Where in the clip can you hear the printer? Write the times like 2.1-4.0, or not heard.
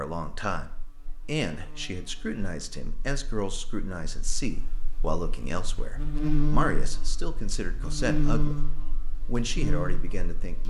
not heard.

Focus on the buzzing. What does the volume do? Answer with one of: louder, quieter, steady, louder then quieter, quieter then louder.
quieter then louder.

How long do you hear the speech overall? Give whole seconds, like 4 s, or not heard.
10 s.